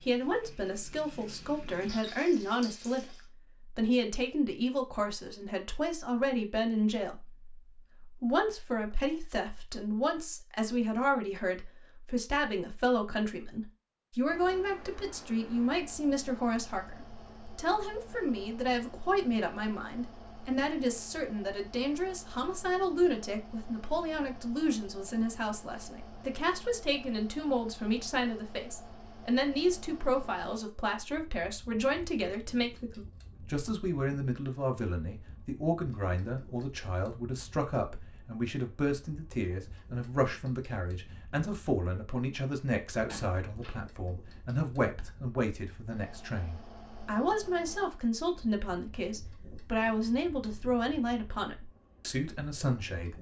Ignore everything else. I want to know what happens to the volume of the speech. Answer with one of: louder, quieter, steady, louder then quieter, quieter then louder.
steady.